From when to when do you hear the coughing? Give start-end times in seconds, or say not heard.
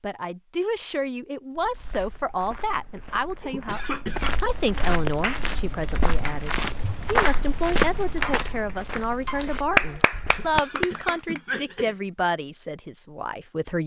3.4-4.3, 10.2-11.9.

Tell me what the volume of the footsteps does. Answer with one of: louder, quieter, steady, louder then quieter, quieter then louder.
louder then quieter.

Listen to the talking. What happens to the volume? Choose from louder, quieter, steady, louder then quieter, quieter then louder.
steady.